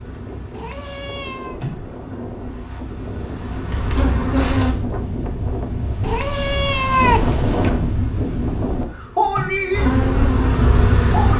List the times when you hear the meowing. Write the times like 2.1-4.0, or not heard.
0.5-1.6, 6.0-7.8.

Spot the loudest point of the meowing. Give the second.
7 s.